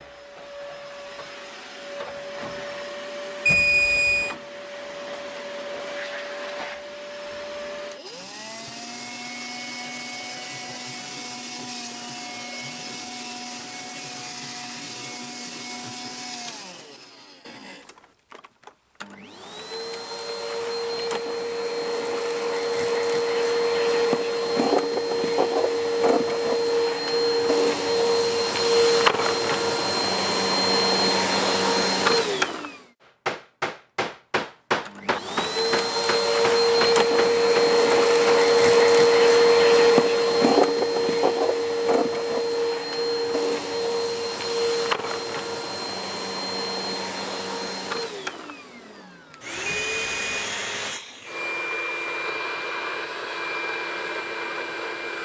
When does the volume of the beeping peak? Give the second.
4 s.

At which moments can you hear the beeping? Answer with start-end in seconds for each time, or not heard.
3.5-4.3, 49.6-50.5.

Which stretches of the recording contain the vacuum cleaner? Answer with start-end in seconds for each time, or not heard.
0.0-32.8, 34.9-55.2.